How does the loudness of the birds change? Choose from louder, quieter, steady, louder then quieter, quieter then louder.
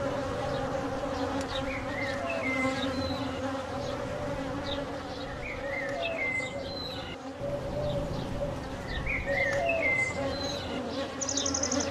louder.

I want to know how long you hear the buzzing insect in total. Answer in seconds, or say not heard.
12 s.